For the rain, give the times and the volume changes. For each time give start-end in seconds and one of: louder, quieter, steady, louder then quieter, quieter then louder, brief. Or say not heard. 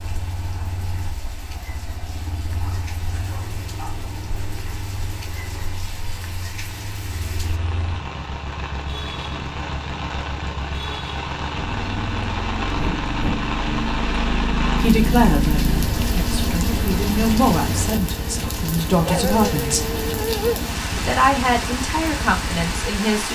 0.0-23.3 louder.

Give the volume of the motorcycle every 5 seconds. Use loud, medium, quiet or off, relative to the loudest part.
medium, medium, loud, loud, medium.